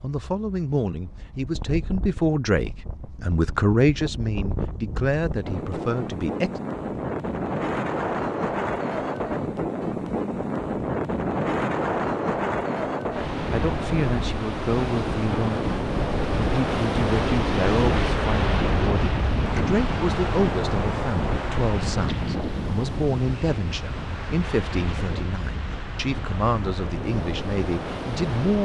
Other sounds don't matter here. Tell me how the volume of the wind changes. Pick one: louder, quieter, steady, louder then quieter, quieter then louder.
louder then quieter.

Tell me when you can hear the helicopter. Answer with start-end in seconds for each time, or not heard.
not heard.